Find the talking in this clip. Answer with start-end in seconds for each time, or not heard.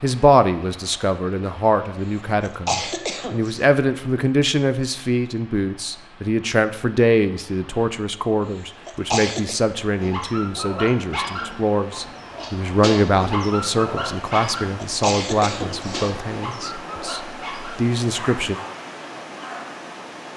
0.0-18.6.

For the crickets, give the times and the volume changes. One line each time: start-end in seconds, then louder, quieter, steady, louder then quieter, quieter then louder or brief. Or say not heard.
not heard.